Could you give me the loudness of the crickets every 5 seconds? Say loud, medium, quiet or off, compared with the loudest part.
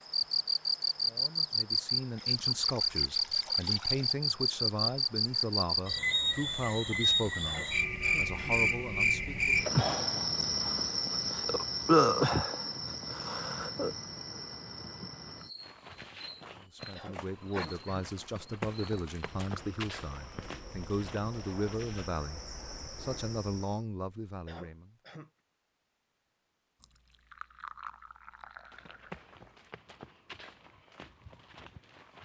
loud, loud, loud, quiet, quiet, off, off.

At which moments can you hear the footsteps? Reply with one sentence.
You can hear the footsteps from 15.6 to 22.1 s and from 28.7 to 32.2 s.